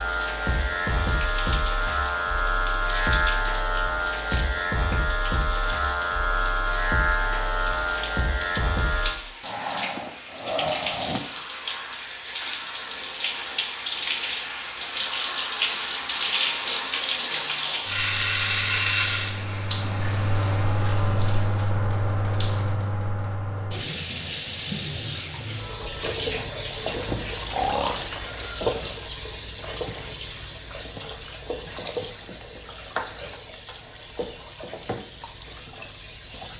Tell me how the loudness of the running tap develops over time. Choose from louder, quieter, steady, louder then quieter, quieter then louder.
louder then quieter.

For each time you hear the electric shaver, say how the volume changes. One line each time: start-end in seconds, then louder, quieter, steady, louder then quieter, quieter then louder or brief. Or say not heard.
0.0-9.2 steady.